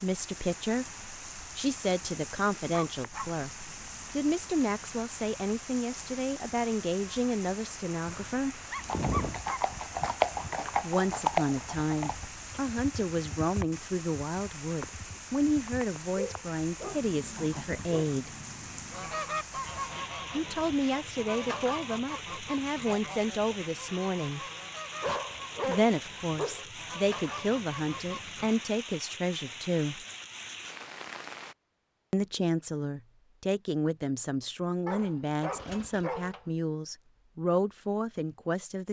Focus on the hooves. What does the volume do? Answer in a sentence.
The volume of the hooves goes down.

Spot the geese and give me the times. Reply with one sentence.
You can hear the geese from 18.9 to 28.6 s.